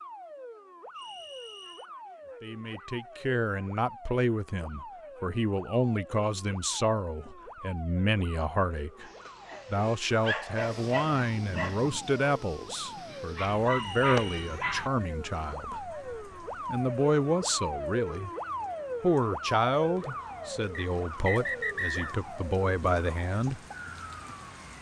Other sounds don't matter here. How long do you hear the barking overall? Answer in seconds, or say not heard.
6 s.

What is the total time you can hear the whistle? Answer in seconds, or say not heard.
3 s.